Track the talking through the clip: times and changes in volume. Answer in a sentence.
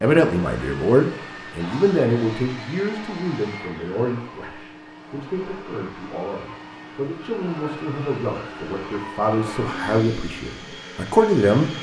You can hear the talking from 0.0 to 11.7 s, getting quieter then louder.